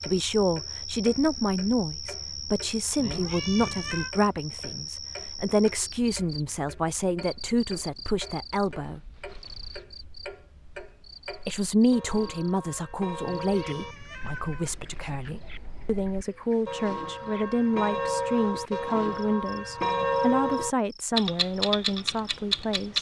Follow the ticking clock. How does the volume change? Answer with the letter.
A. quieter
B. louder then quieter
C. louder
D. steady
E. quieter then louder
C.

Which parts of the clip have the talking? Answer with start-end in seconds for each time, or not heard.
0.0-9.1, 11.4-22.9.